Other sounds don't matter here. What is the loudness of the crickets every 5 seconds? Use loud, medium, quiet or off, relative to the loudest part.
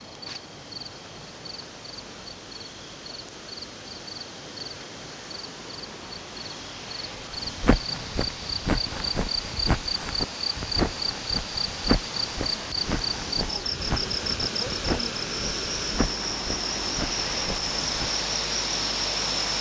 medium, medium, loud, loud.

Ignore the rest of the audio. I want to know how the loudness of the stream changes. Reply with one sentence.
The volume of the stream goes up.